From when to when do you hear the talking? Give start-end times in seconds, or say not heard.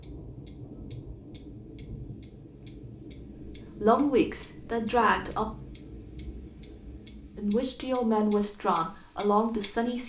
3.8-5.5, 7.3-10.0.